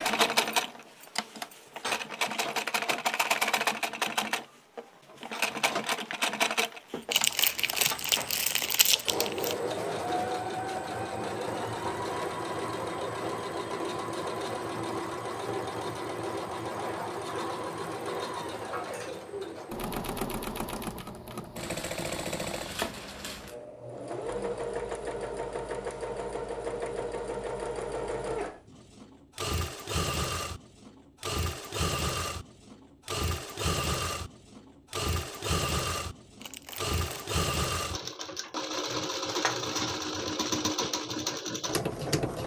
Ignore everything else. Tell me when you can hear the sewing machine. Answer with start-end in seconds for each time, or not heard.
0.0-42.4.